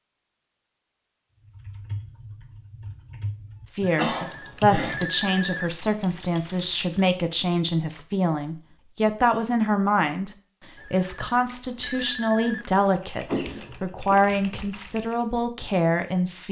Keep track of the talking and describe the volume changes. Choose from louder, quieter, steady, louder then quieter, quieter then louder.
steady.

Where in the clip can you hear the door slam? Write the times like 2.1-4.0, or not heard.
not heard.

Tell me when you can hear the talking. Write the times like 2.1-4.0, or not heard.
3.7-16.4.